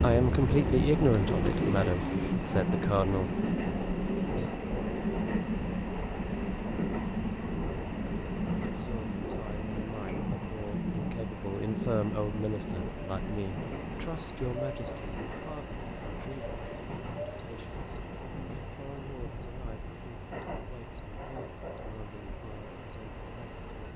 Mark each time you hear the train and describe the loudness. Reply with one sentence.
You can hear the train from 0.0 to 23.9 s, getting quieter.